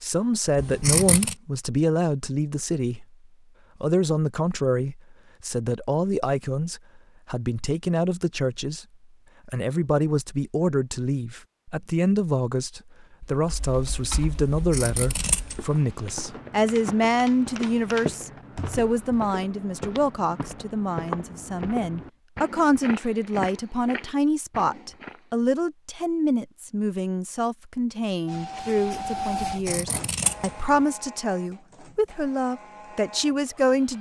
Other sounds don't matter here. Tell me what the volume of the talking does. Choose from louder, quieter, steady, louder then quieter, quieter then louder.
steady.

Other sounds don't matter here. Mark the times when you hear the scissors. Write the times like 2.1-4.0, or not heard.
0.6-1.4, 14.5-15.6, 29.5-30.7.